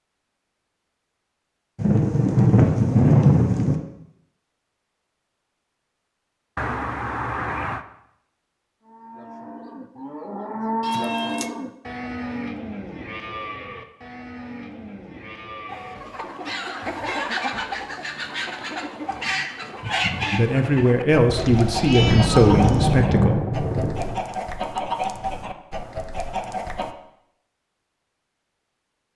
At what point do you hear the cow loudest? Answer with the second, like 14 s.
11 s.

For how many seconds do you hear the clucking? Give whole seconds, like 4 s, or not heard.
11 s.